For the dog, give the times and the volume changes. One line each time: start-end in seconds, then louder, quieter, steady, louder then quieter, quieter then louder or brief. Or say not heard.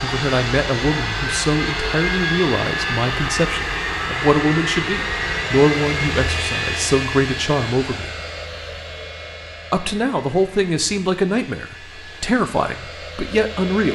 not heard.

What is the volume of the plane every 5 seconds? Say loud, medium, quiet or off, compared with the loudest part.
loud, loud, quiet.